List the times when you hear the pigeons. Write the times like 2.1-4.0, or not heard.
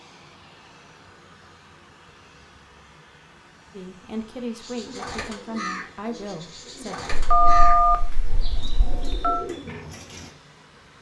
4.6-10.3.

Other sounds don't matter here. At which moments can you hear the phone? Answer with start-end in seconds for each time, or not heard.
7.1-9.4.